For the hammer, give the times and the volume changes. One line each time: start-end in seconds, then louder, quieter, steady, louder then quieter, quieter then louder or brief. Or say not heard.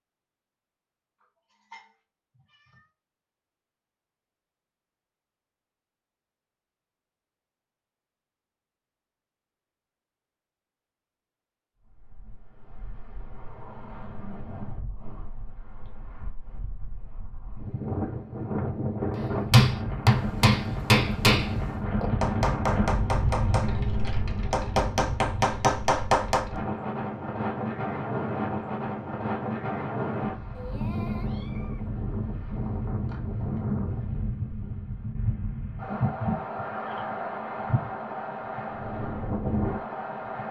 19.1-26.4 quieter then louder.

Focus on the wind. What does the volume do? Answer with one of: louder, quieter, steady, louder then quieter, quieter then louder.
louder.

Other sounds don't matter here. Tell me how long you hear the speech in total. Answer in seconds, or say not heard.
not heard.